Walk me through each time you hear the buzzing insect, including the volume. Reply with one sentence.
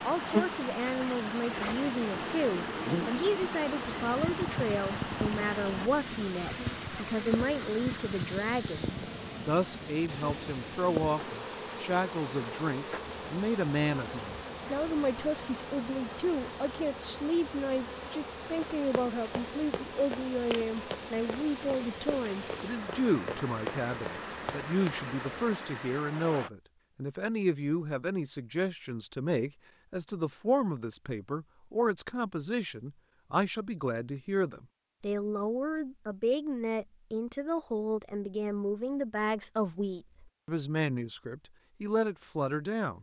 The buzzing insect can be heard from 0.0 to 25.6 s, getting quieter.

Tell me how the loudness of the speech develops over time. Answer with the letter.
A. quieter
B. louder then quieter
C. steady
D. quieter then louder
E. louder
C.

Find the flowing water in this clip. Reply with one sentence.
You can hear the flowing water from 0.0 to 26.5 s.